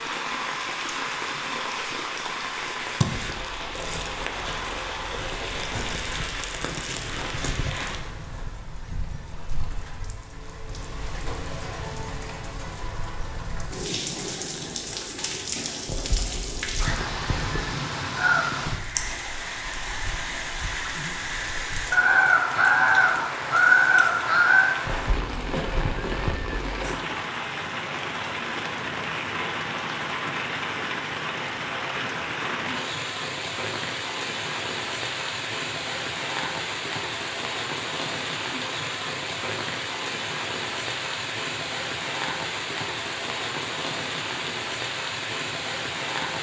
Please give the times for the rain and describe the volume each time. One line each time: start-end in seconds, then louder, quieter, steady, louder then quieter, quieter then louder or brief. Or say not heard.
0.0-46.3 steady.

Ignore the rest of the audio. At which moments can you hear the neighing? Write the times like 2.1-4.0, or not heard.
15.8-17.7, 24.9-26.6.